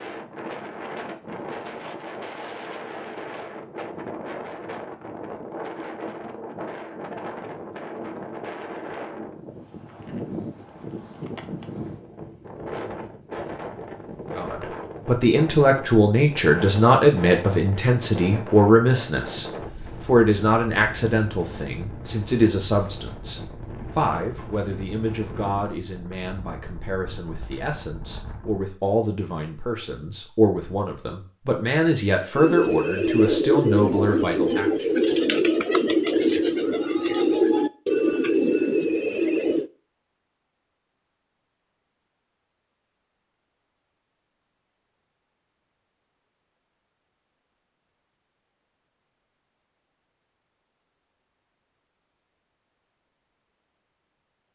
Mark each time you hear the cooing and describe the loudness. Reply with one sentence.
The cooing can be heard from 32.4 to 39.7 s, at a steady volume.